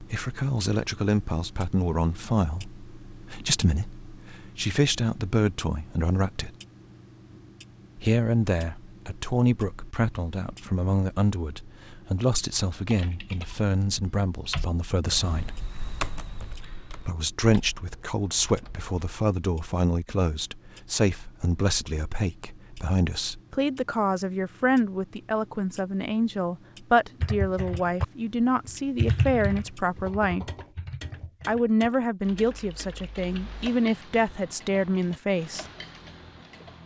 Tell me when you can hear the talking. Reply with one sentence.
The talking can be heard from 0.0 to 6.5 s, from 8.0 to 15.6 s, from 17.0 to 30.4 s and from 31.4 to 35.6 s.